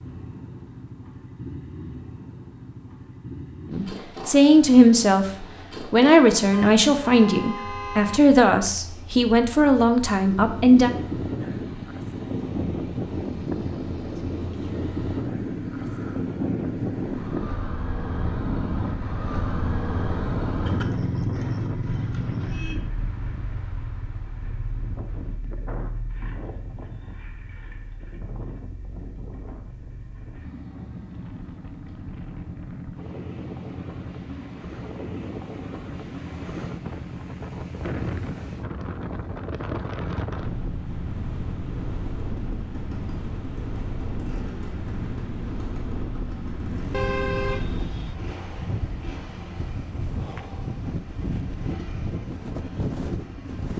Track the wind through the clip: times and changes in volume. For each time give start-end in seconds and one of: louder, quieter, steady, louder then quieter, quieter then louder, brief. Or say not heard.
10.3-53.7 quieter then louder.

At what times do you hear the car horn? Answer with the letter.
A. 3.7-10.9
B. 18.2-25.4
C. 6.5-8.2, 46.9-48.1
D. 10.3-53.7
C.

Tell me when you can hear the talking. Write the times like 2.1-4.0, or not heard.
3.7-10.9.